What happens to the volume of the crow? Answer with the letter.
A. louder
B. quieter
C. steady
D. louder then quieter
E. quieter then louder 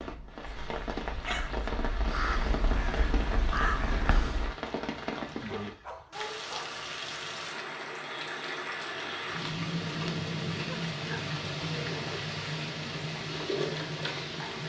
A.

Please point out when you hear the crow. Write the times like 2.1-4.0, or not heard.
0.0-4.5.